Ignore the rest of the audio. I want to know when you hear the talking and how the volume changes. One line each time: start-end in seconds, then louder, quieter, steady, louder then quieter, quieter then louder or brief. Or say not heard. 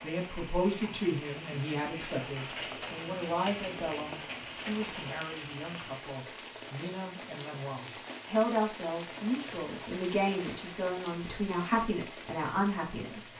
0.0-13.3 quieter then louder.